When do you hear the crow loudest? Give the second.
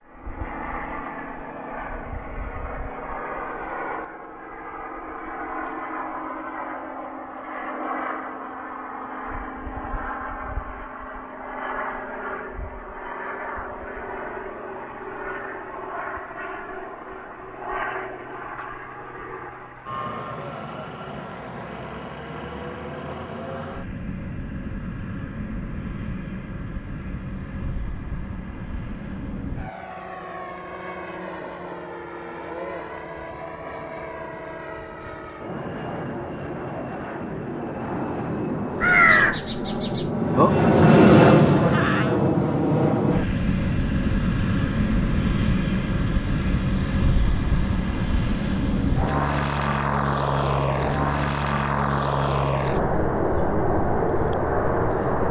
39 s.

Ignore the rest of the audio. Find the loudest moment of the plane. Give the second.
41 s.